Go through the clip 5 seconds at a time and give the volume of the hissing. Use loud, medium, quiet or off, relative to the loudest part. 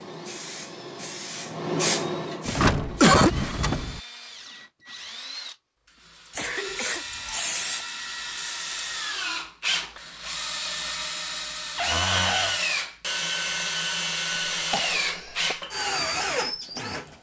loud, loud, off, off.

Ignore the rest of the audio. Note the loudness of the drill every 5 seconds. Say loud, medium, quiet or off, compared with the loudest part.
quiet, medium, loud, loud.